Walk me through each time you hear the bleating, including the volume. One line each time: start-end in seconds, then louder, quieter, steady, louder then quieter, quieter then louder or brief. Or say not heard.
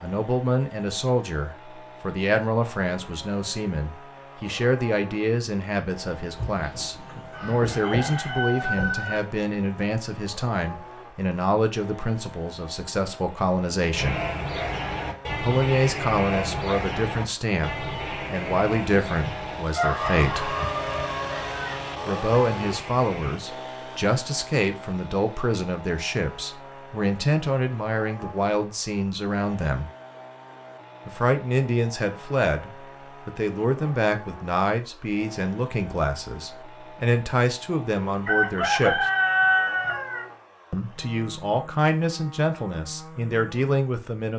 13.9-23.4 quieter.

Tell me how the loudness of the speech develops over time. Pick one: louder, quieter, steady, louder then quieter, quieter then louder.
steady.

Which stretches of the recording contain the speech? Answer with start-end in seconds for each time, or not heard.
0.0-14.2, 15.4-20.6, 22.1-29.9, 31.1-39.0, 40.7-44.3.